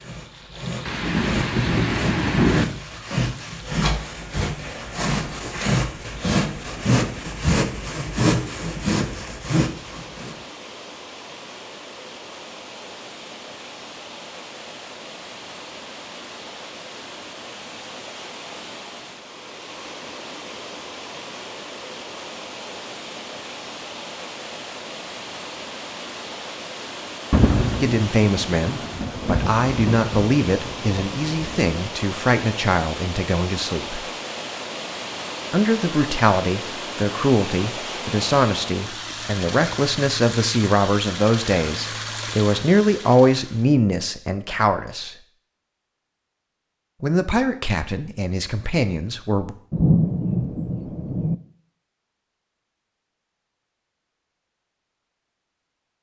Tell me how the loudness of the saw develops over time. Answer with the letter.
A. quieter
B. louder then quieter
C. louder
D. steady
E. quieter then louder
C.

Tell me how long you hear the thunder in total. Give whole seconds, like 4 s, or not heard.
8 s.